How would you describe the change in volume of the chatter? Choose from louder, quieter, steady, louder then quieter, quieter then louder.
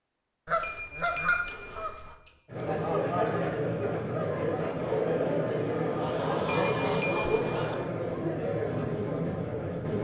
steady.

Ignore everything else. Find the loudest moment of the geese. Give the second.
1 s.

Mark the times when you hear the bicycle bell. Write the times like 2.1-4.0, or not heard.
0.6-2.0, 6.5-7.5.